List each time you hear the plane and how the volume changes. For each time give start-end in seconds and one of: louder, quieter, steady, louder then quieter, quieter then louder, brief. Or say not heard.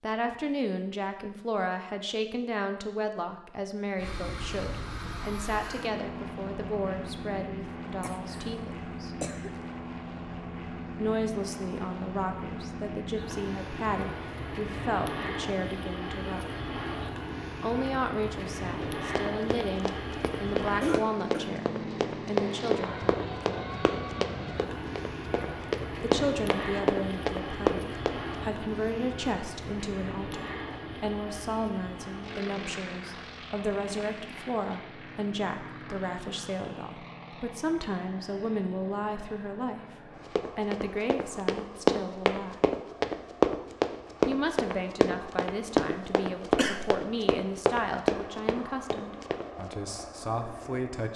4.0-51.1 quieter.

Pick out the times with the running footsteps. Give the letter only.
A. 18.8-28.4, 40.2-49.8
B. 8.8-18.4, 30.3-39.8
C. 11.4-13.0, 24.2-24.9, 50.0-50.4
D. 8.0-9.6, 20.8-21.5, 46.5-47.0
A.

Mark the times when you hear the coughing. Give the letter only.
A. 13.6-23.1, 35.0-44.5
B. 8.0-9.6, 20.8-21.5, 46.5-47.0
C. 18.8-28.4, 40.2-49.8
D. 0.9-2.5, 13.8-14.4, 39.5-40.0
B.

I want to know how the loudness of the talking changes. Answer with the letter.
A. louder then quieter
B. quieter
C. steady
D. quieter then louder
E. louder
C.